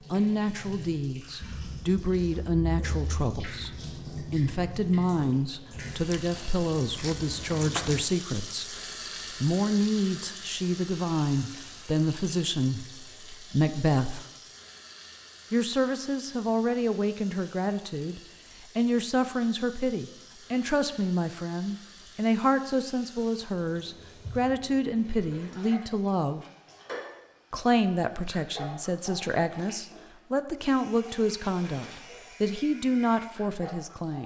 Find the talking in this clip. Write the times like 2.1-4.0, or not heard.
0.1-14.2, 15.5-26.4, 27.5-34.2.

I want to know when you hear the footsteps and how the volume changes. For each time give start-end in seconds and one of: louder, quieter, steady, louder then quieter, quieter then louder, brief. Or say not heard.
not heard.